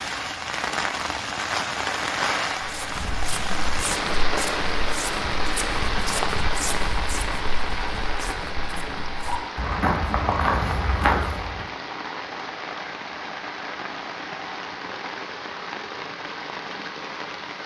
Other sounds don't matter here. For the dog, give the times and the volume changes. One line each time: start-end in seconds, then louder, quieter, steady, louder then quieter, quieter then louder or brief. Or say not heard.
not heard.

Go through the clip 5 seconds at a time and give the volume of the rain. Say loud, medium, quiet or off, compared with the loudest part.
loud, loud, medium, medium.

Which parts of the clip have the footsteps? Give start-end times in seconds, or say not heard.
2.6-11.7.